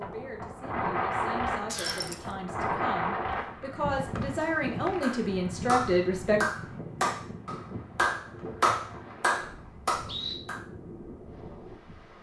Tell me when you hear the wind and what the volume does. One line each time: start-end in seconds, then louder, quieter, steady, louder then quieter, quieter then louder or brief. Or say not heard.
0.0-12.1 quieter.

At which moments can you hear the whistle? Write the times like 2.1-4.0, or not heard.
1.7-2.1, 4.2-5.1, 8.3-10.3.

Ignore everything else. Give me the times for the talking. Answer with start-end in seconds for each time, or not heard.
0.0-6.4.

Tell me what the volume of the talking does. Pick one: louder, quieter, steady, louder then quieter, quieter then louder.
louder.